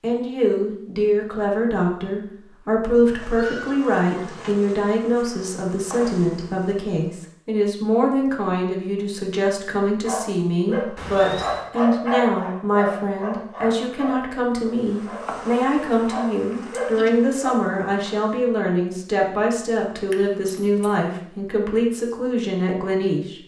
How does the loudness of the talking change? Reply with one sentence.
The volume of the talking stays about the same.